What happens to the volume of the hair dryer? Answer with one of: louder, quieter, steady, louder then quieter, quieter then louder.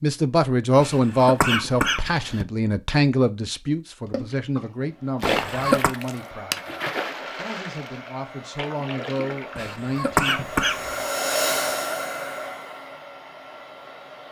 louder then quieter.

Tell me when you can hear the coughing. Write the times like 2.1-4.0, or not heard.
0.8-2.5, 5.2-6.0, 9.6-11.1.